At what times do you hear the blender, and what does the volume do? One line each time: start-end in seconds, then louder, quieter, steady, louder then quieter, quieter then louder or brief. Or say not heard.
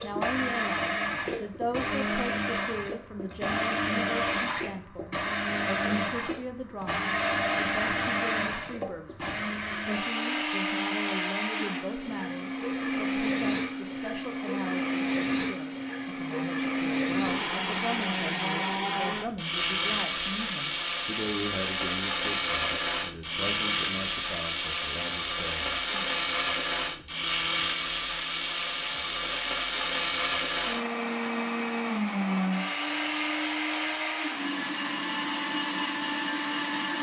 0.0-36.9 steady.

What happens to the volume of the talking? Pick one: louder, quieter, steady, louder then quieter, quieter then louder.
steady.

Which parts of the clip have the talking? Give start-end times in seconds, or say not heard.
0.0-25.9.